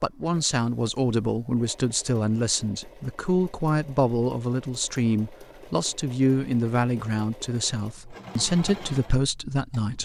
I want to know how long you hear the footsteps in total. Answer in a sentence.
The footsteps can't be heard in this clip.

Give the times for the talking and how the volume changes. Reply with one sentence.
You can hear the talking from 0.0 to 10.0 s, at a steady volume.